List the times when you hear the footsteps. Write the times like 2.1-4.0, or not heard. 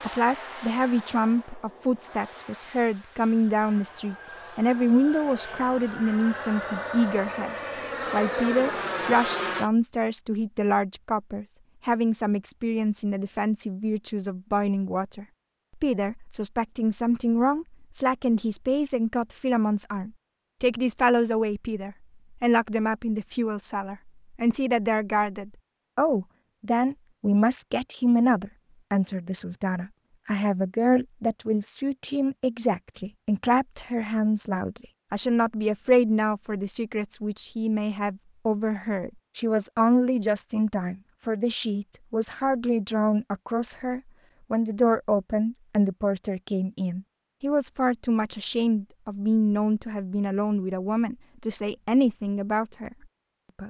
not heard.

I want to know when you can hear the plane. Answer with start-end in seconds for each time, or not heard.
0.0-9.7.